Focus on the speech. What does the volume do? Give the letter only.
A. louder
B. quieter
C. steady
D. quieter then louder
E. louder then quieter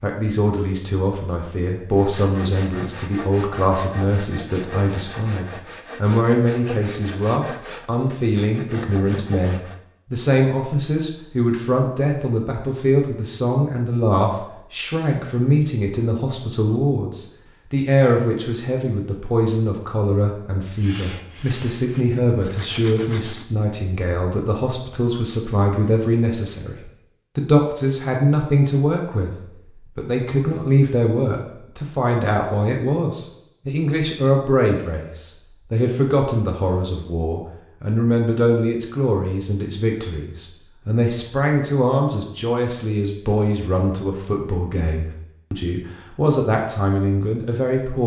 C.